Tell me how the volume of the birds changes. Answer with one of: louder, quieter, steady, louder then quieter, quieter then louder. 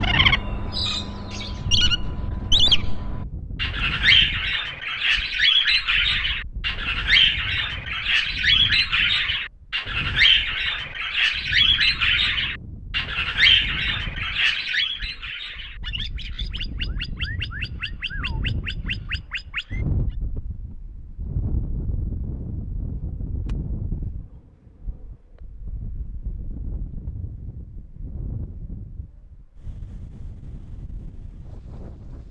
quieter.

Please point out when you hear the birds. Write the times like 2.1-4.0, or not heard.
0.0-19.9.